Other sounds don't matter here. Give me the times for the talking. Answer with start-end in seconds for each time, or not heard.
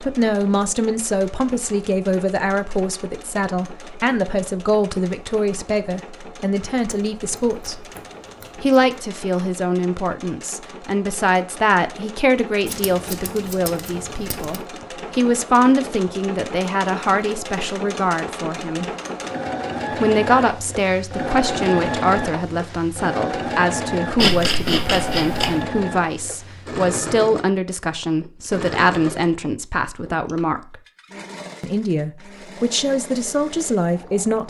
0.0-7.8, 8.6-18.9, 20.0-30.8, 31.6-34.4.